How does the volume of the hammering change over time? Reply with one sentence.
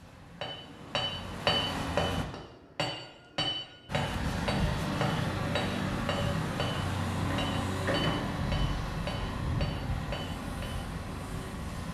The volume of the hammering goes down.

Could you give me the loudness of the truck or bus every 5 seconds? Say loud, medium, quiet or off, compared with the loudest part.
loud, loud, medium.